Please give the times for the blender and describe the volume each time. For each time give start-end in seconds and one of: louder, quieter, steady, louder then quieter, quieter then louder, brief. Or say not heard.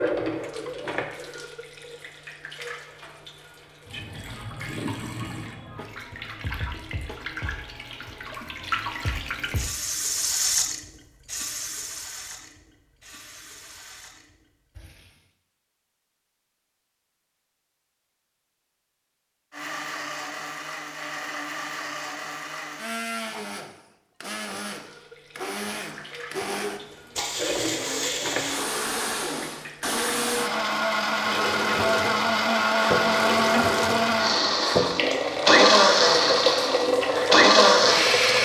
19.5-38.4 louder.